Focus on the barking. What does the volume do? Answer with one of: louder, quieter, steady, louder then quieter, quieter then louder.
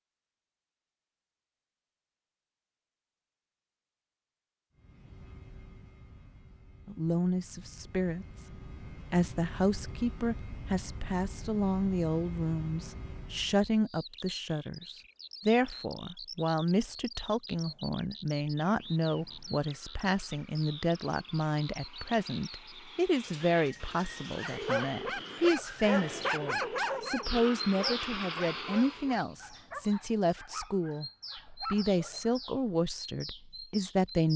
quieter.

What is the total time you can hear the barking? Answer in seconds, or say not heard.
8 s.